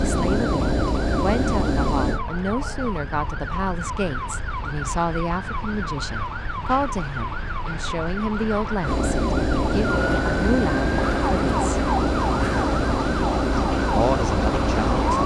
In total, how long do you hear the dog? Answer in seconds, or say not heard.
not heard.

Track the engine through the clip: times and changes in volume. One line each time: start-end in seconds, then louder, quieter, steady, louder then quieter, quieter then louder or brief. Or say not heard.
0.0-2.2 brief
8.8-15.2 steady.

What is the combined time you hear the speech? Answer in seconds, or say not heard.
13 s.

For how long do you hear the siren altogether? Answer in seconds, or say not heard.
15 s.